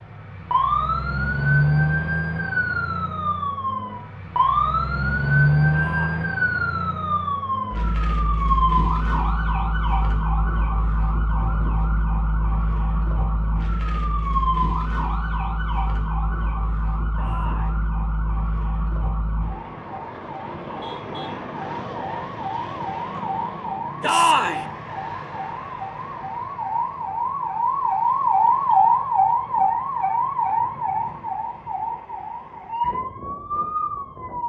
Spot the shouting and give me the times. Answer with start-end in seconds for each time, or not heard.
5.7-6.3, 17.1-17.8, 24.0-24.6.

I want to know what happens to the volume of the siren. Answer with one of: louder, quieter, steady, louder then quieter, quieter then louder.
quieter then louder.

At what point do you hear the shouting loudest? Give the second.
24 s.